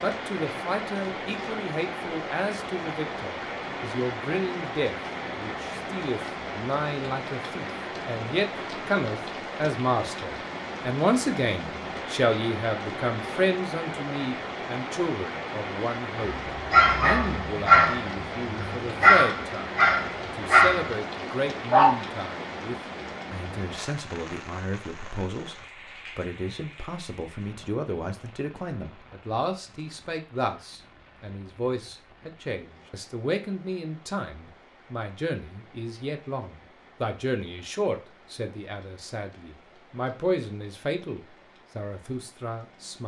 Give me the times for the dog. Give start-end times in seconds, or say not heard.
16.2-21.9.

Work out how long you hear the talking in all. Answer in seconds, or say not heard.
43 s.